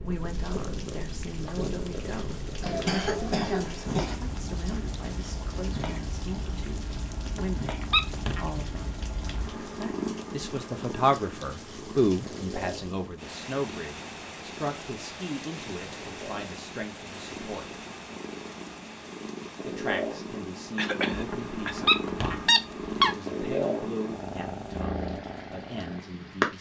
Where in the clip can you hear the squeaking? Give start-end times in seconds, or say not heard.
7.2-8.5, 21.1-23.1.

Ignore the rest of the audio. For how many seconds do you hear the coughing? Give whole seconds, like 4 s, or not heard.
3 s.